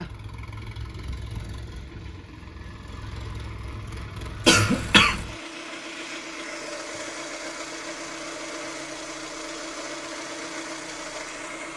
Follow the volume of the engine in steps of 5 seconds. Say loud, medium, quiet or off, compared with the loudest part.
medium, loud, loud.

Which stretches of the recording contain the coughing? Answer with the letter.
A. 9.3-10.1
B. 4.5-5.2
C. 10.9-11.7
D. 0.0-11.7
B.